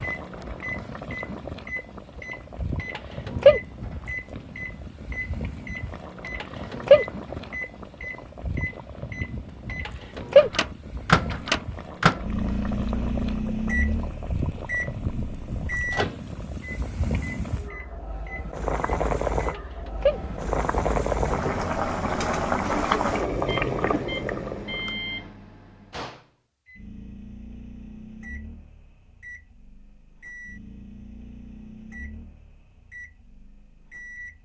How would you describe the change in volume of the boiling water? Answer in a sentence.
The loudness of the boiling water goes up.